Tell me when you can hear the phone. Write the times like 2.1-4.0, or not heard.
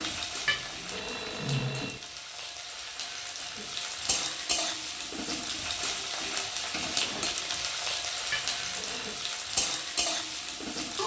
0.5-2.0, 8.3-9.2.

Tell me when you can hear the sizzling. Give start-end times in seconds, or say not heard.
0.0-11.0.